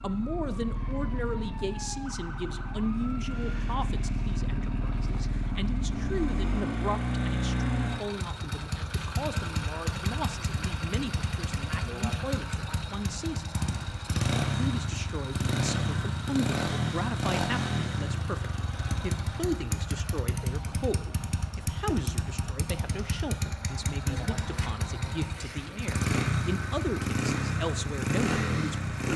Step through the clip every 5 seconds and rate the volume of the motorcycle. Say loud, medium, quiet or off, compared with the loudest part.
medium, loud, loud, loud, medium, loud.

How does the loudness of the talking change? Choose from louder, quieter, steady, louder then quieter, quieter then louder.
steady.